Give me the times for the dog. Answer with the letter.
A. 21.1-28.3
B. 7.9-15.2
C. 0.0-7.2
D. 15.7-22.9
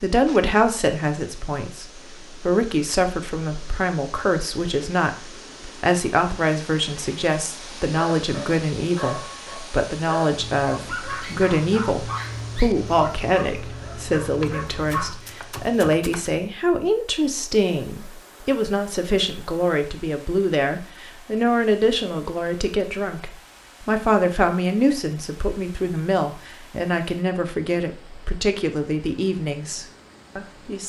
B.